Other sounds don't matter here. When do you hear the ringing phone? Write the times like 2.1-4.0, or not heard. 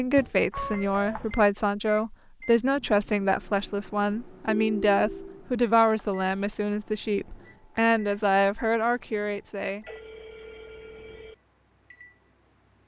0.5-1.4, 4.5-5.5, 9.8-11.3.